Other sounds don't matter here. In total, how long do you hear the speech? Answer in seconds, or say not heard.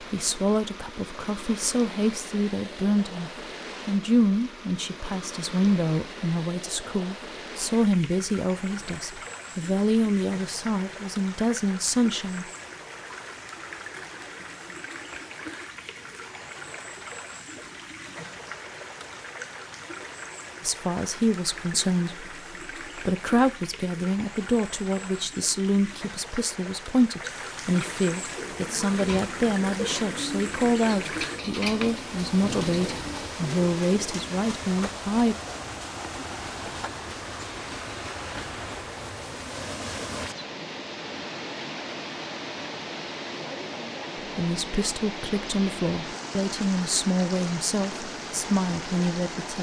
32 s.